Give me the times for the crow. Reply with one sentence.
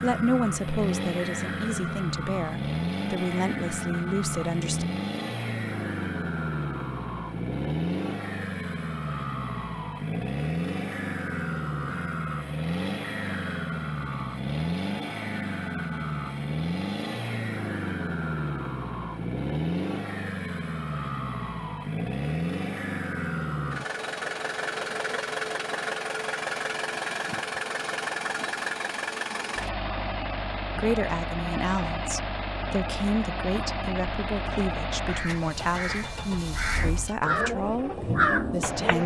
You can hear the crow from 35.0 to 39.0 s.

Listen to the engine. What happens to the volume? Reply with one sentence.
The volume of the engine stays about the same.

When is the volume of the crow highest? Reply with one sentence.
The loudest moment of the crow is at 38 seconds.